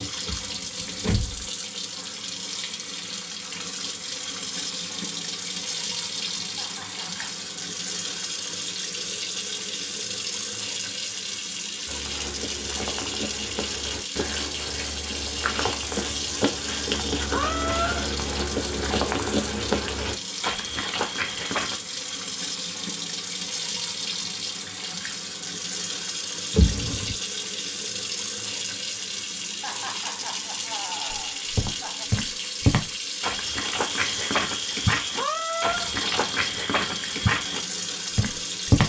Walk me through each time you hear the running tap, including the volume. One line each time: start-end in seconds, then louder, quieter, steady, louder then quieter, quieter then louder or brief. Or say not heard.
0.0-38.8 steady.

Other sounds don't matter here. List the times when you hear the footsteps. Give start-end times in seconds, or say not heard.
11.8-21.8, 31.1-38.8.